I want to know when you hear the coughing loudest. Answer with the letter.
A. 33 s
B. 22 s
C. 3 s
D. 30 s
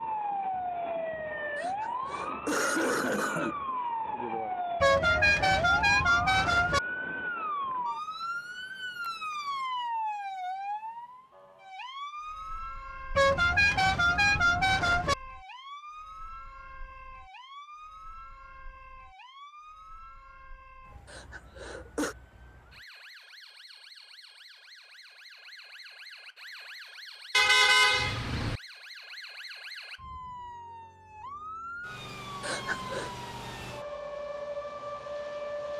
C.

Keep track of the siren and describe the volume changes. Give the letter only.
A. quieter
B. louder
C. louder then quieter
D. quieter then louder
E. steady
D.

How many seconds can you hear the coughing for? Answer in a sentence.
The coughing can be heard for 4 seconds in total.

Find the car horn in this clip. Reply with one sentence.
You can hear the car horn from 4.8 to 6.8 s, from 13.2 to 15.2 s and from 27.3 to 28.6 s.